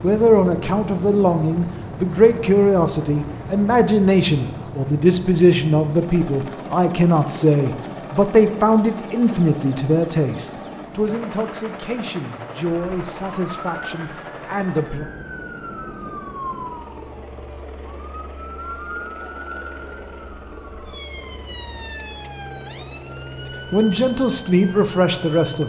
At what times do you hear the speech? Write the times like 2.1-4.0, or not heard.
0.0-15.1, 23.7-25.6.